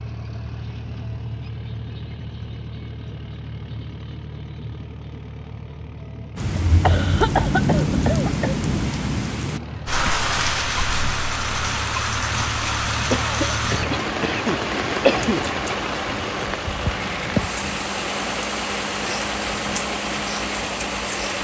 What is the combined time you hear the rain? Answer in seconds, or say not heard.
15 s.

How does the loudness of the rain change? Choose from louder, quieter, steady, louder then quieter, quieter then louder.
quieter.